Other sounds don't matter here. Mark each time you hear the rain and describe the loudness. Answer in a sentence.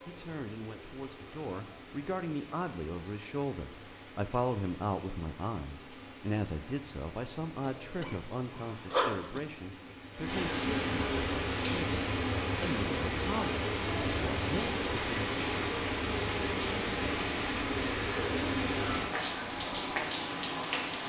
The rain can be heard from 0.0 to 21.0 s, getting louder.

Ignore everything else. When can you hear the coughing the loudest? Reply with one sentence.
The volume of the coughing peaks at 9 seconds.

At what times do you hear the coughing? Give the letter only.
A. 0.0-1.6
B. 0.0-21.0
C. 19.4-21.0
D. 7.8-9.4
D.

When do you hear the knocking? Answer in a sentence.
The knocking can't be heard in this clip.